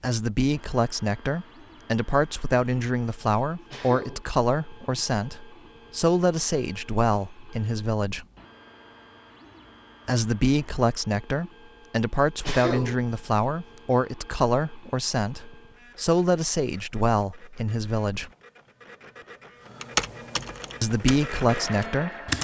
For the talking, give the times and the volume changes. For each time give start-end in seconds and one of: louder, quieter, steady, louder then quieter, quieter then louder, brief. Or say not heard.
0.0-8.2 steady
10.1-18.3 steady
20.8-22.3 brief.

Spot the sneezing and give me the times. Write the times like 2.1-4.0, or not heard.
3.7-4.2, 12.4-12.9.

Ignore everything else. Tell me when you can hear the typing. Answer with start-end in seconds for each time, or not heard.
19.8-22.4.